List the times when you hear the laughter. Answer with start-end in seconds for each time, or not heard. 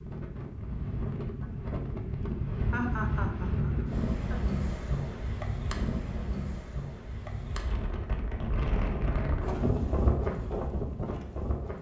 2.7-4.4.